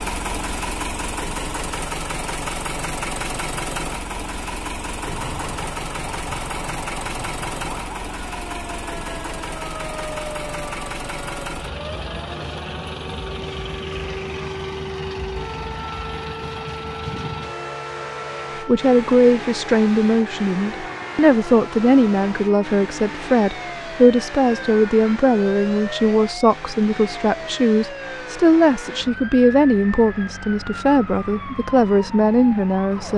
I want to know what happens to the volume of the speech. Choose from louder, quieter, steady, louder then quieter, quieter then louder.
steady.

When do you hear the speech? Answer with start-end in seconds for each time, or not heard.
18.6-33.1.